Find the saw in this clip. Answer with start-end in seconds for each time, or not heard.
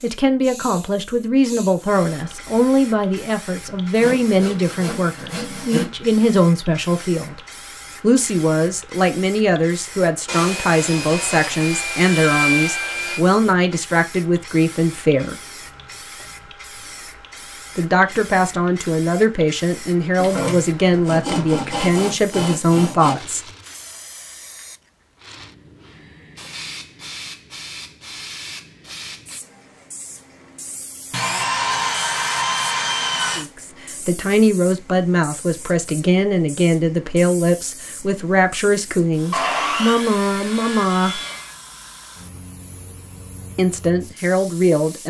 4.0-5.9, 10.2-13.2, 20.1-23.1, 31.1-33.5, 39.3-41.5.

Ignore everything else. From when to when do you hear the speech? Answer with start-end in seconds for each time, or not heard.
0.0-7.4, 8.0-15.3, 17.8-23.4, 33.4-41.2, 43.5-45.0.